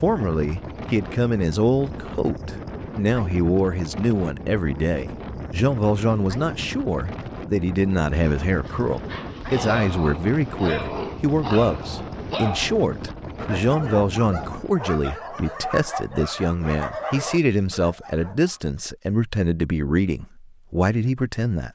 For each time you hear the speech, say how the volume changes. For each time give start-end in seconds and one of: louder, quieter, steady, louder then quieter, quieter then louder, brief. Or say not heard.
0.0-21.7 steady.